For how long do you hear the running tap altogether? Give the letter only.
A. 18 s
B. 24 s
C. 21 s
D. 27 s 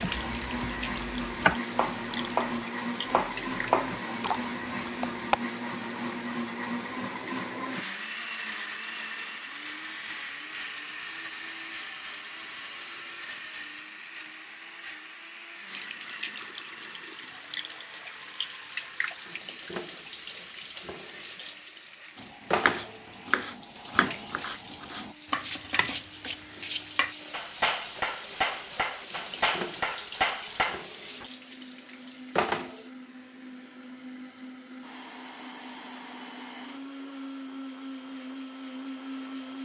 C.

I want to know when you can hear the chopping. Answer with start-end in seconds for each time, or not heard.
0.0-5.3, 22.1-31.2.